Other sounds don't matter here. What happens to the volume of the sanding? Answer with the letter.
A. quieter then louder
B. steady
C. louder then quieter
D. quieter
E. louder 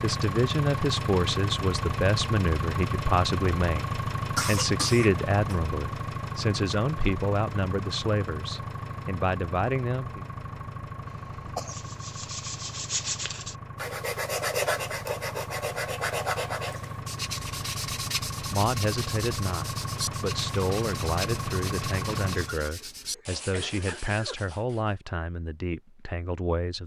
D.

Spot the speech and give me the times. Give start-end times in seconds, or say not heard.
0.0-10.2, 18.4-26.8.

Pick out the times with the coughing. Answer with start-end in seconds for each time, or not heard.
4.3-5.5, 11.1-11.9, 22.4-24.4.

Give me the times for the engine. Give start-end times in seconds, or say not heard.
0.0-22.6.